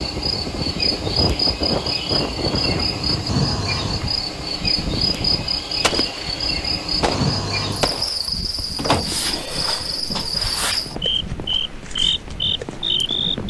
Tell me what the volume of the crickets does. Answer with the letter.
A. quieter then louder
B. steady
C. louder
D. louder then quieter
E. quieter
B.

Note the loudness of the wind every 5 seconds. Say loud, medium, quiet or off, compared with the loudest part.
loud, medium, medium.